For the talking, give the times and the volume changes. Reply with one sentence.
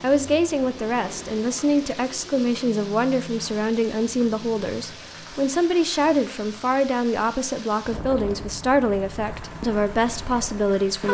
You can hear the talking from 0.0 to 11.0 s, at a steady volume.